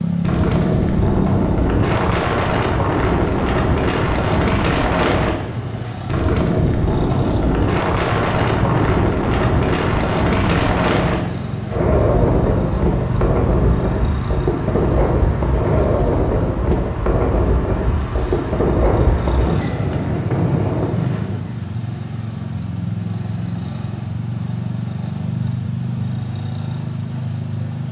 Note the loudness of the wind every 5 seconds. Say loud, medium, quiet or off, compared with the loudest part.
loud, loud, loud, loud, loud, off.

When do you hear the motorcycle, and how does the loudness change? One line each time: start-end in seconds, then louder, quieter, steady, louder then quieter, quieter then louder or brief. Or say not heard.
0.0-27.8 steady.